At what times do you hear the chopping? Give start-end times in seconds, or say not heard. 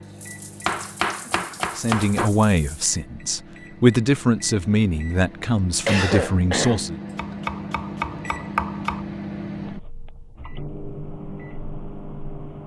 0.7-2.3, 7.2-9.1.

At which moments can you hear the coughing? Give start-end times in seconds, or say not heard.
5.8-6.9.